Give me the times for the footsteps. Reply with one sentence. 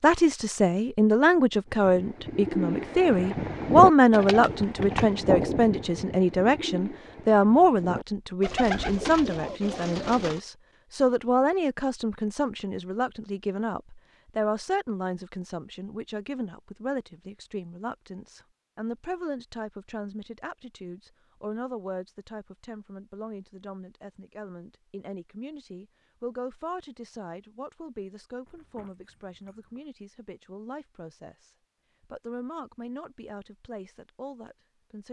The footsteps can't be heard in this clip.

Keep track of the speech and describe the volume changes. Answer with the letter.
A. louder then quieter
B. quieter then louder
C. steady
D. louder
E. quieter
E.